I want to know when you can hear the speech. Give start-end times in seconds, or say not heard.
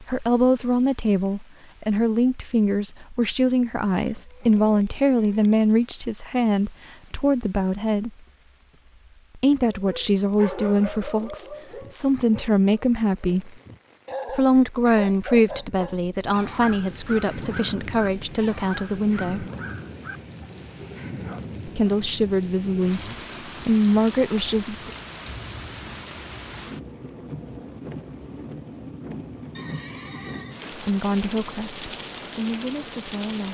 0.0-8.1, 9.3-13.6, 14.2-19.4, 21.6-24.9, 30.7-33.4.